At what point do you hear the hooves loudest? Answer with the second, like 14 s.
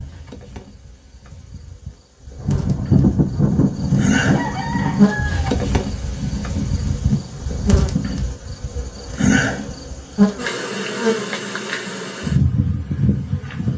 3 s.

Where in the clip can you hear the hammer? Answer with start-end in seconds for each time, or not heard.
not heard.